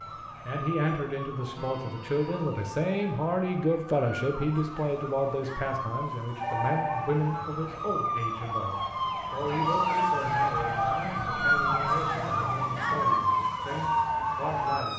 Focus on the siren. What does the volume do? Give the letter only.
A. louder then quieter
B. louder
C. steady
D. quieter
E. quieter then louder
B.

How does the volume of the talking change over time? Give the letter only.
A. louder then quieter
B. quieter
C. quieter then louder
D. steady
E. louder
B.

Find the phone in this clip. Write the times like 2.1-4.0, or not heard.
1.6-2.4, 6.3-7.2, 10.3-12.2.